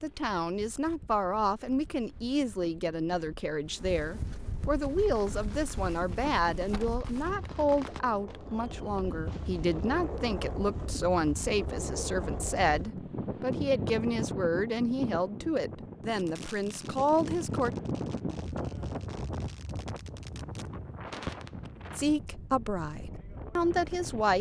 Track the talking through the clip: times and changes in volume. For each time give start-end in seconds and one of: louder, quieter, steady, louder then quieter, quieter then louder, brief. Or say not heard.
0.0-17.8 steady
21.9-24.3 brief.